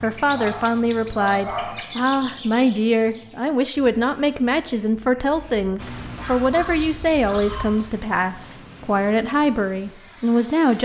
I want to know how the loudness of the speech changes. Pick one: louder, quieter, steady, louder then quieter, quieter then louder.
steady.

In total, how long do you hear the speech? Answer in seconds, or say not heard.
11 s.